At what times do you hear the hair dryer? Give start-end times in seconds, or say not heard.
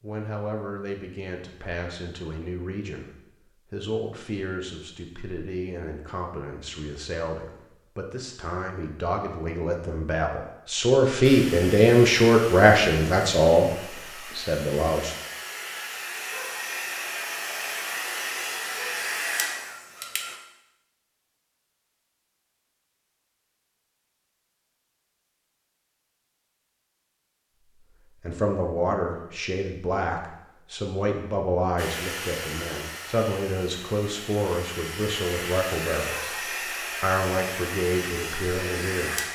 11.2-20.4, 31.8-39.2.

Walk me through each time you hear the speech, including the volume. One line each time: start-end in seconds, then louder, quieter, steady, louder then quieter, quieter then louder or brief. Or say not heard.
0.0-15.2 louder
28.1-39.2 steady.